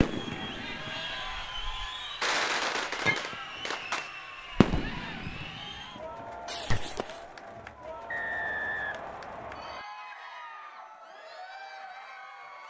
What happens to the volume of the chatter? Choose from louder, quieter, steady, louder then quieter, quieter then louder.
quieter.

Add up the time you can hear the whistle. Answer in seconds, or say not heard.
2 s.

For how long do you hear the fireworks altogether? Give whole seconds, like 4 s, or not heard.
7 s.